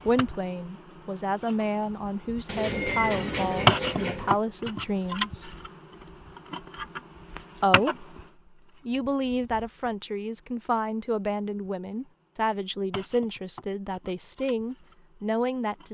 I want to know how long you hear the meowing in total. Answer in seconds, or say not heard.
2 s.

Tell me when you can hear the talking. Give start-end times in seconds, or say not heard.
0.0-5.5, 7.6-8.1, 8.8-15.9.